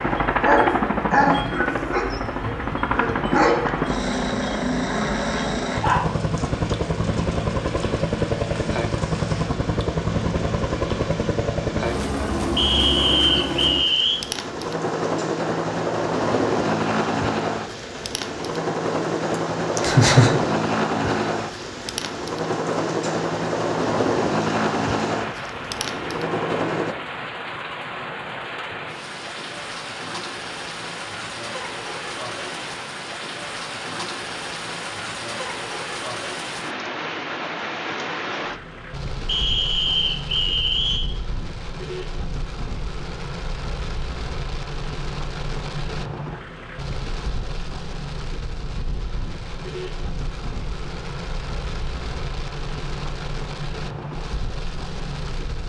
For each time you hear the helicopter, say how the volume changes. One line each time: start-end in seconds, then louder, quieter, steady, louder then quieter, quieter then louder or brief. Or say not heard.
0.0-26.9 steady.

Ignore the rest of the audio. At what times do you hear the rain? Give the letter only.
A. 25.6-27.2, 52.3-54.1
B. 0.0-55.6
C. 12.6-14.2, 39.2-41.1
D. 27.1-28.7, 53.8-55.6
B.